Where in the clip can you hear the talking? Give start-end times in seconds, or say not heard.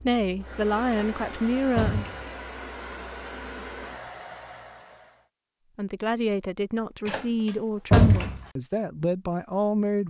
0.0-2.0, 5.8-10.0.